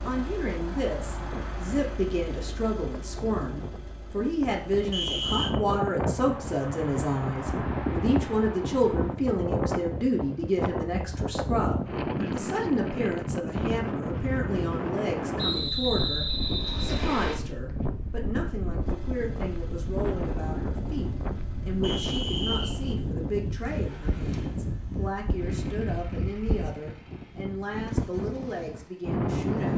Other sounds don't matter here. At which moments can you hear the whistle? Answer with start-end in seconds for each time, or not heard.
4.9-5.5, 15.3-17.4, 21.8-22.9.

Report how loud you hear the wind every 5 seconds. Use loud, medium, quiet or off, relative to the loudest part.
medium, loud, loud, loud, loud, loud.